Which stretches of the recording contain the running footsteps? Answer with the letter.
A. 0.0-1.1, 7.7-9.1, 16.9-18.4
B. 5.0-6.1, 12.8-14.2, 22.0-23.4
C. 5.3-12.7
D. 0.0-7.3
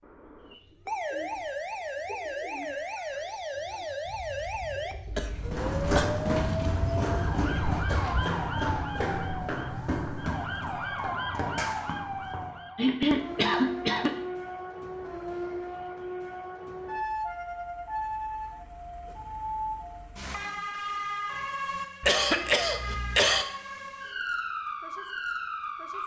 C.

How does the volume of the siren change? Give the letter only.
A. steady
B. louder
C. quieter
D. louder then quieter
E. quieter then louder
A.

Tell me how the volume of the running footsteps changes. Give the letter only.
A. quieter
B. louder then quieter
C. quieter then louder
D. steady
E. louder
A.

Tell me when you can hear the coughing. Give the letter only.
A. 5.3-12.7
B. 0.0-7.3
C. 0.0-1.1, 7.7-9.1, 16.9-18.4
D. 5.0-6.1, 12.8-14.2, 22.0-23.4
D.